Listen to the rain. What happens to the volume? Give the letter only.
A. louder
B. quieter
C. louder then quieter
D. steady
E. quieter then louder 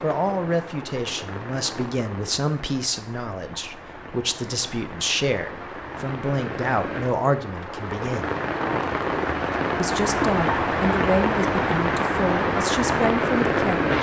A.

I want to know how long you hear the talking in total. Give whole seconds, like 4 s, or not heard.
12 s.